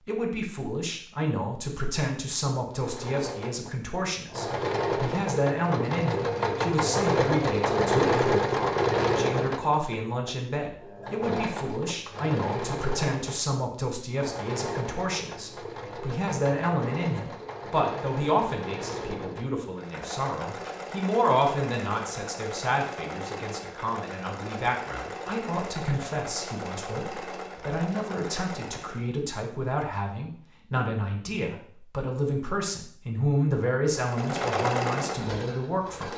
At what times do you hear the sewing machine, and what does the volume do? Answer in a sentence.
The sewing machine can be heard from 2.7 to 29.1 s, getting quieter; and briefly from 33.9 to 36.1 s.